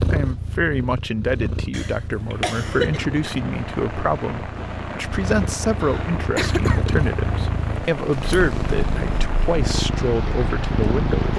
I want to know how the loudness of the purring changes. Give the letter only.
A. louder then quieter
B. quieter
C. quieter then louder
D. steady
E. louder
E.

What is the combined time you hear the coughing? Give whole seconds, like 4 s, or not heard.
2 s.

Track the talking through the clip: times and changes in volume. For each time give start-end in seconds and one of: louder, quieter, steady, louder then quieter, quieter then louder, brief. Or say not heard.
0.1-11.3 steady.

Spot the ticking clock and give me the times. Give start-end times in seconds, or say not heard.
not heard.